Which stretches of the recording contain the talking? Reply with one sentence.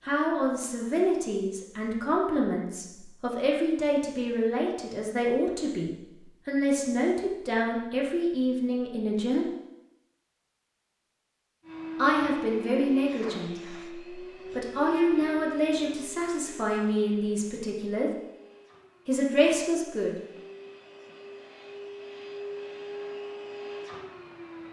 The talking can be heard from 0.0 to 9.5 s, from 11.9 to 18.1 s and from 19.1 to 20.1 s.